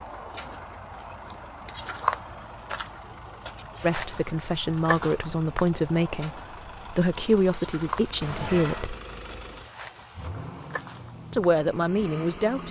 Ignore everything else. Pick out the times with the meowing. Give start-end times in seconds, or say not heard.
8.2-8.9.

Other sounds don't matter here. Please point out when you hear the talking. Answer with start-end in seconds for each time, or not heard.
3.8-8.9, 11.3-12.6.